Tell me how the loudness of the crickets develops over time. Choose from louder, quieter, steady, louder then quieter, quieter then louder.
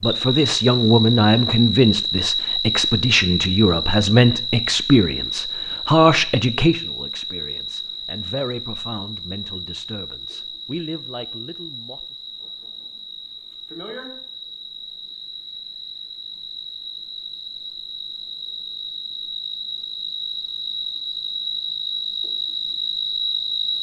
quieter then louder.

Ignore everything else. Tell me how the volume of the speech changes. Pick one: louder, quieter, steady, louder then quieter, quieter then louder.
quieter.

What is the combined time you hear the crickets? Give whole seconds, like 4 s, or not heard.
24 s.